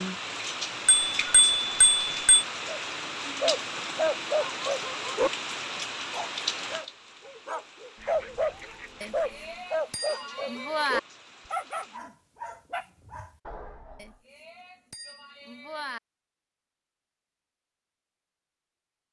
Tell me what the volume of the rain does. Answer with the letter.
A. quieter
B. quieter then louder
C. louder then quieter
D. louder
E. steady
A.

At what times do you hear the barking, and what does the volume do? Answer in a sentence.
The barking can be heard briefly from 2.6 to 5.3 s; and from 6.1 to 14.2 s, getting louder then quieter.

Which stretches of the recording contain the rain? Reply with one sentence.
The rain can be heard from 0.0 to 12.0 s.